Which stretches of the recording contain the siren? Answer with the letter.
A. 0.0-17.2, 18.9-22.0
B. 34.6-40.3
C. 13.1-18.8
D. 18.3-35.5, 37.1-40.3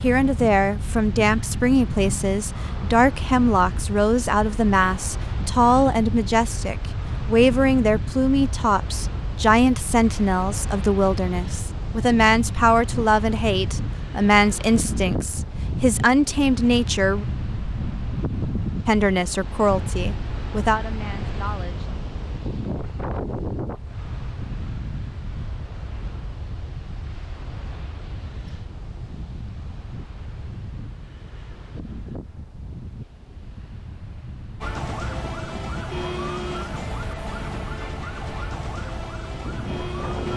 B.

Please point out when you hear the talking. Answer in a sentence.
The talking can be heard from 0.0 to 17.2 s and from 18.9 to 22.0 s.